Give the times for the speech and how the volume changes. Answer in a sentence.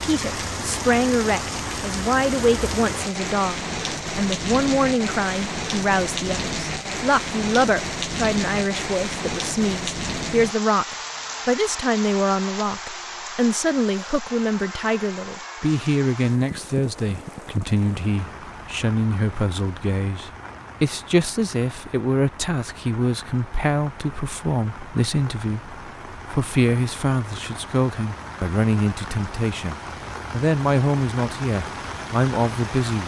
The speech can be heard from 0.0 to 33.0 s, at a steady volume.